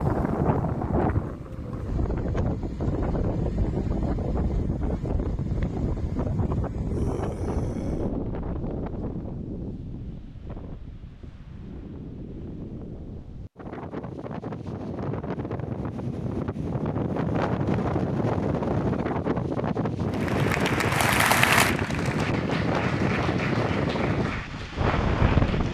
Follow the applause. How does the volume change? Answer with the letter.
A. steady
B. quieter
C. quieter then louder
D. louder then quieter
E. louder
B.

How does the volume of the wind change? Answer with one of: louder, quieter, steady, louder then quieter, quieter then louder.
quieter then louder.